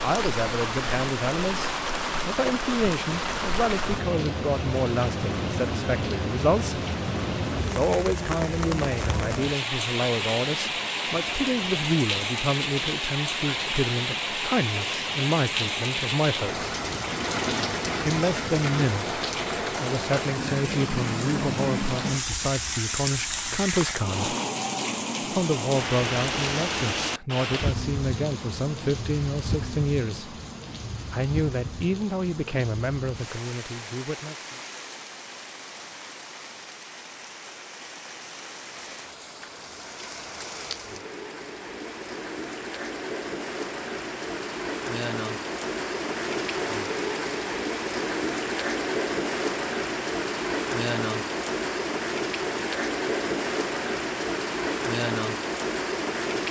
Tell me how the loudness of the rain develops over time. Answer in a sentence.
The loudness of the rain goes down, then up.